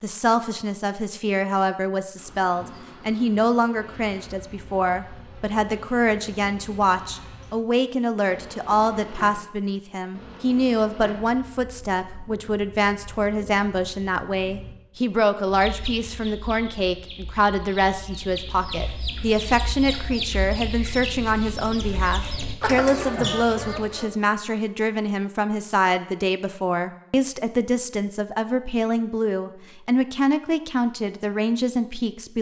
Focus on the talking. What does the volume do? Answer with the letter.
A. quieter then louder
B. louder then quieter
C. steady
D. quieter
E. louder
C.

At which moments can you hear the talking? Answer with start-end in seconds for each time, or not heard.
0.0-32.3.